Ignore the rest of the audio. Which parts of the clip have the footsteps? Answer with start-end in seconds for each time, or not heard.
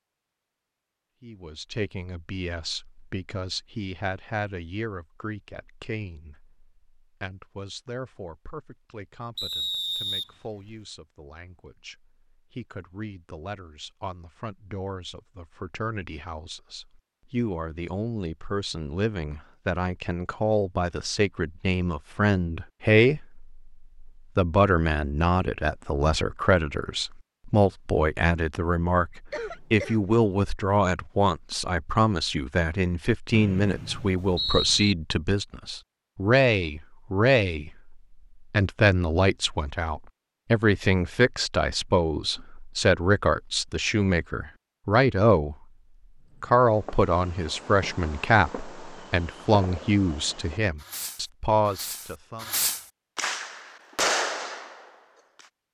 not heard.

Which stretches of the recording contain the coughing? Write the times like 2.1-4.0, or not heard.
29.3-30.0.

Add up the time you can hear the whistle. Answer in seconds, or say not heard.
3 s.